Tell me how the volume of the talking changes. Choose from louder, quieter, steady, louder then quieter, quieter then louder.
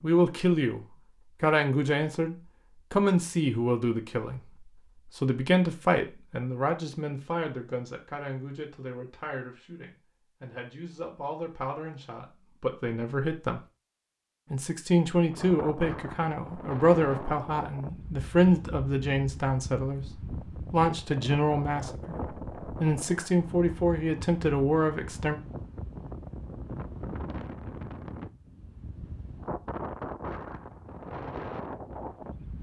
quieter then louder.